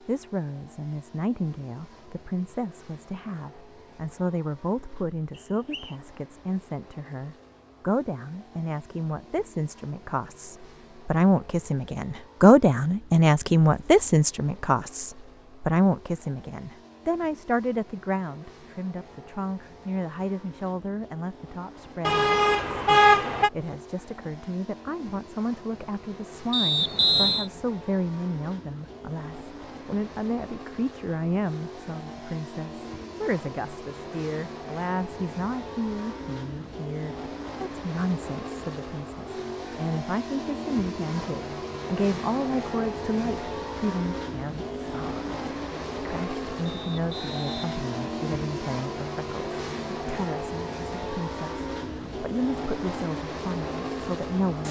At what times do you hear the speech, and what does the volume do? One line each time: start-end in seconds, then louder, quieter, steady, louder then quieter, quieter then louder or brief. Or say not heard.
0.1-54.6 louder then quieter.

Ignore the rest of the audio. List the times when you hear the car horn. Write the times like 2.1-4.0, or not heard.
22.1-23.5.